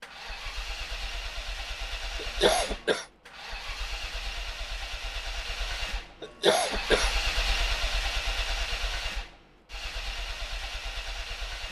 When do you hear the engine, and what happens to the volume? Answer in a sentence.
The engine can be heard from 0.0 to 11.6 s, getting louder then quieter.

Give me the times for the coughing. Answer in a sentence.
You can hear the coughing from 2.1 to 3.0 s and from 6.2 to 7.2 s.